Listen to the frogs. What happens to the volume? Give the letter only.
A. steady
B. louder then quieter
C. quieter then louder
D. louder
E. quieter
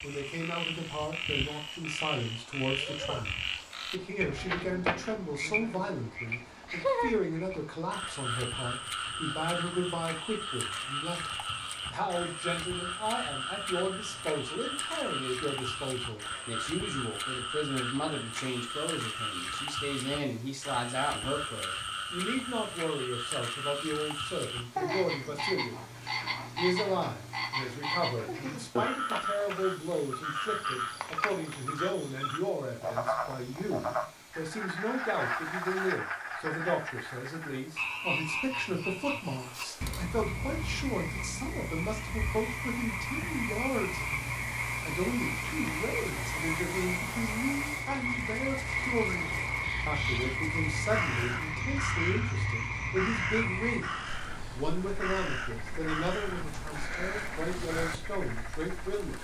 A.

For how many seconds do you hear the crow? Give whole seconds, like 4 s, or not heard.
8 s.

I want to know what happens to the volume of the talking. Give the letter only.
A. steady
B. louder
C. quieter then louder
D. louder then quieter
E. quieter
A.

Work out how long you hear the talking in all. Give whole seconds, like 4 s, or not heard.
59 s.